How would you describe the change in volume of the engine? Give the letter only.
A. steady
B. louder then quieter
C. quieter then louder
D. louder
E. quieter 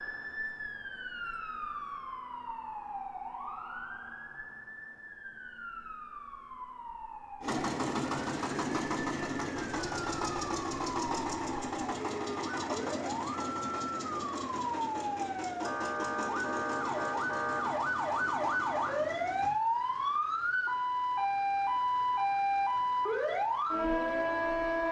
E.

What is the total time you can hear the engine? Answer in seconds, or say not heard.
12 s.